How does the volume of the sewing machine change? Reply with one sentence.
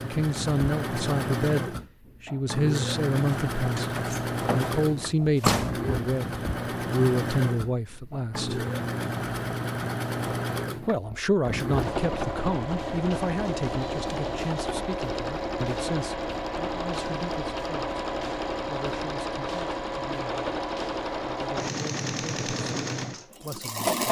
The volume of the sewing machine stays about the same.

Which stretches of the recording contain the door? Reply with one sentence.
The door can be heard from 3.5 to 5.8 s.